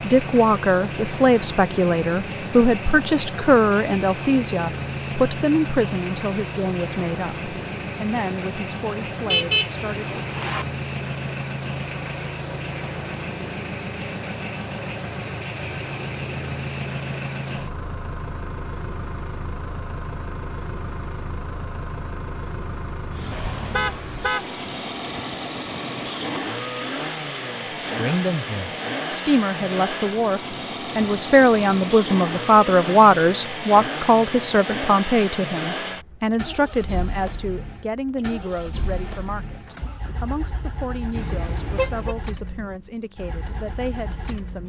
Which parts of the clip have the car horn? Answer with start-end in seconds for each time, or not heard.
9.2-10.7, 23.5-24.5, 41.1-42.1.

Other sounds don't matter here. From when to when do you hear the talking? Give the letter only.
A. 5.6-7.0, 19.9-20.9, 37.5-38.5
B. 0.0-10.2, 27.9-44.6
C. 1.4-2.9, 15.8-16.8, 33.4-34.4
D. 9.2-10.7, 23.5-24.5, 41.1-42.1
B.